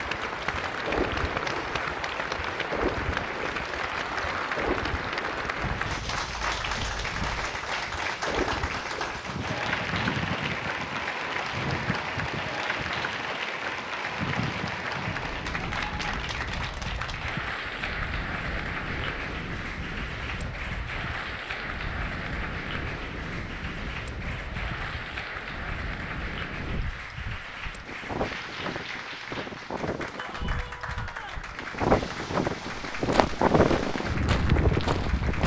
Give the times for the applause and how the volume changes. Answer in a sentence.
You can hear the applause from 0.0 to 35.4 s, getting quieter.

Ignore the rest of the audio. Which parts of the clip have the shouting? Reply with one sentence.
You can hear the shouting from 30.1 to 31.5 s.